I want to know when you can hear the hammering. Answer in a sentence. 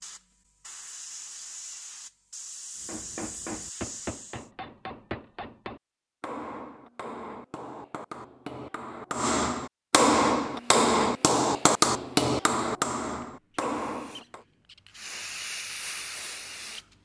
The hammering can be heard from 2.8 to 14.4 s.